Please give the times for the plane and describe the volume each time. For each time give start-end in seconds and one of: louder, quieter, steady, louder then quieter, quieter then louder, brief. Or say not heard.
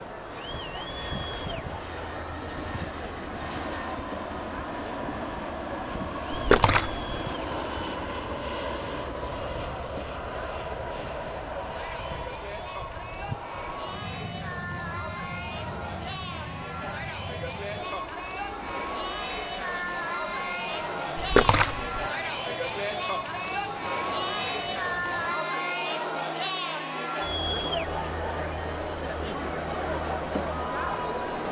0.0-31.4 quieter.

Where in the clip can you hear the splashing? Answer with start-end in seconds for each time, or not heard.
6.3-7.0, 21.1-22.1.